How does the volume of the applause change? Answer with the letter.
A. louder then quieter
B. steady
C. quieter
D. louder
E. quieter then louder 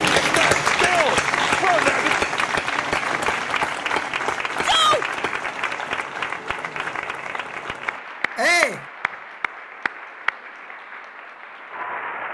C.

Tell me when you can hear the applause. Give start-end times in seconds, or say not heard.
0.0-12.2.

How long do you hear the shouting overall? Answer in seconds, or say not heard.
3 s.